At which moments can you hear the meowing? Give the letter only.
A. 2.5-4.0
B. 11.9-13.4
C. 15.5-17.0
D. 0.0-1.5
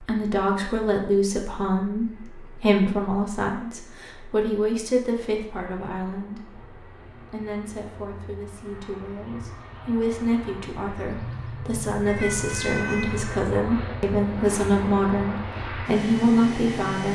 B.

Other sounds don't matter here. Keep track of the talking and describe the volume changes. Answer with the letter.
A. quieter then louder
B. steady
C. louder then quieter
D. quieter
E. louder
A.